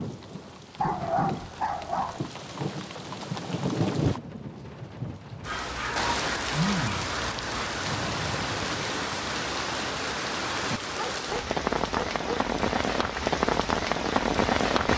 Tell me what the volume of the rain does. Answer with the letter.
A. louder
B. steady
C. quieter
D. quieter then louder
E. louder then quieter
A.